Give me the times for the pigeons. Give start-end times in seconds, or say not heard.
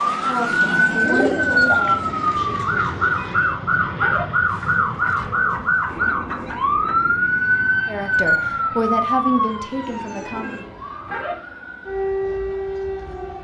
0.5-2.1, 4.6-7.0, 9.8-11.3.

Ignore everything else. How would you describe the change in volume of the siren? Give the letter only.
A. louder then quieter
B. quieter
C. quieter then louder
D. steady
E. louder
B.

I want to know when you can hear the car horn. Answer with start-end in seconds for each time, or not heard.
3.1-4.2, 10.2-11.3.